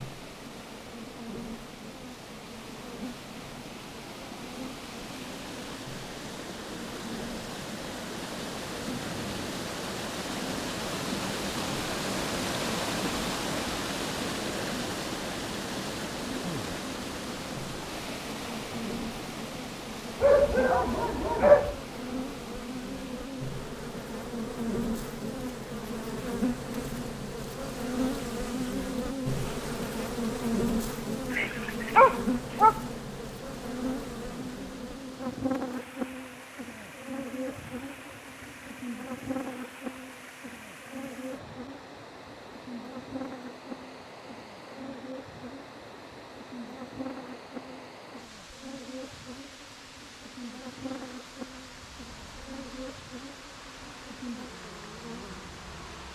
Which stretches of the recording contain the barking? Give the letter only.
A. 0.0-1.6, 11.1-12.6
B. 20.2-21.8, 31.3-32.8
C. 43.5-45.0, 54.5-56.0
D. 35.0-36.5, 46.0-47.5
B.